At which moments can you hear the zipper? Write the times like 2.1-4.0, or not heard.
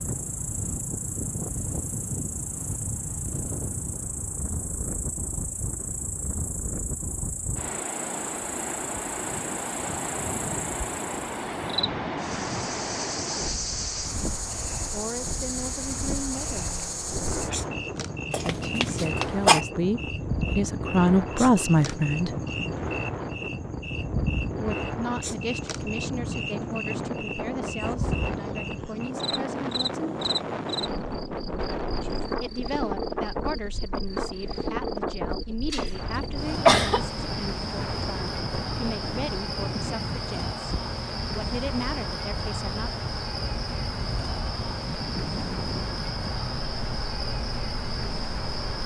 not heard.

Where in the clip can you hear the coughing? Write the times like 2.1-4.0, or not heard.
18.3-19.6, 35.7-37.0.